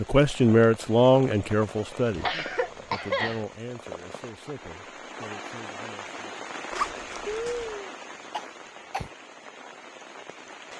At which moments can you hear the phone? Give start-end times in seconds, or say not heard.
not heard.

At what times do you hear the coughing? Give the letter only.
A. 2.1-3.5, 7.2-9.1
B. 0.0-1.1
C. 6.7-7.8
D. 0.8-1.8
A.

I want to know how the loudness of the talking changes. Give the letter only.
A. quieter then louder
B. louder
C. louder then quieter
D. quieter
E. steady
D.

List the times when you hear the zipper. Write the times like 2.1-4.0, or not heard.
6.7-7.8.